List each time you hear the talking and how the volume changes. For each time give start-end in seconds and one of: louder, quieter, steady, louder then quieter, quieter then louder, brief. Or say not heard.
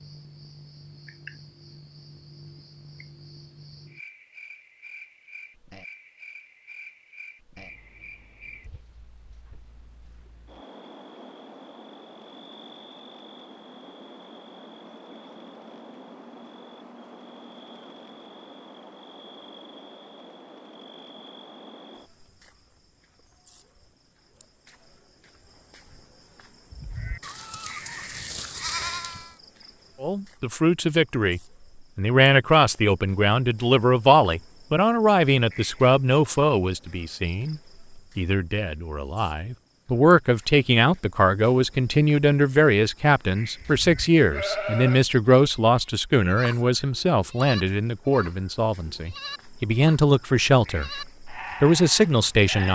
30.0-52.7 steady.